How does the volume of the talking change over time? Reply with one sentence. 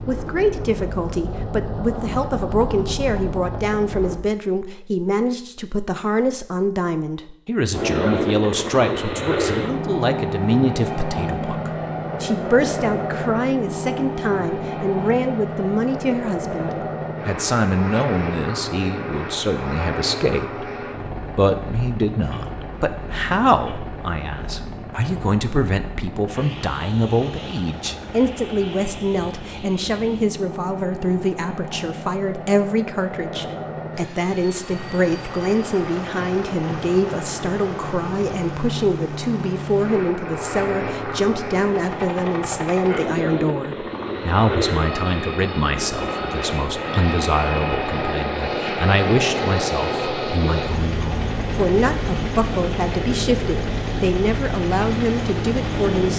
The volume of the talking stays about the same.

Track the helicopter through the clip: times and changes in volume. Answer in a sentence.
The helicopter can be heard from 0.0 to 4.2 s, at a steady volume; and from 7.7 to 56.1 s, getting quieter then louder.